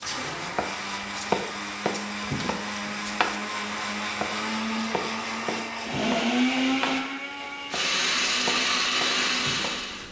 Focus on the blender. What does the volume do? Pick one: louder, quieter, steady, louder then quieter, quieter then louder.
louder.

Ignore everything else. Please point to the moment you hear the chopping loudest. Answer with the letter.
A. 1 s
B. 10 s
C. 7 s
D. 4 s
A.